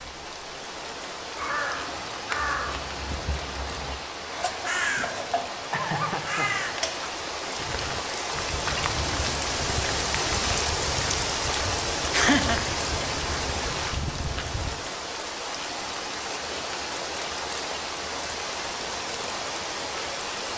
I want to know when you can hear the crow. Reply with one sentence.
The crow can be heard from 1.4 to 7.1 s.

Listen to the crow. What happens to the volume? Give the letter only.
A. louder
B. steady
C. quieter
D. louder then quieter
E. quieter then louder
E.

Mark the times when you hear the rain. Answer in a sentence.
You can hear the rain from 0.0 to 20.5 s.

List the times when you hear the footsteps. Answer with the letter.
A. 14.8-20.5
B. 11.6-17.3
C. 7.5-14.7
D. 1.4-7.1
C.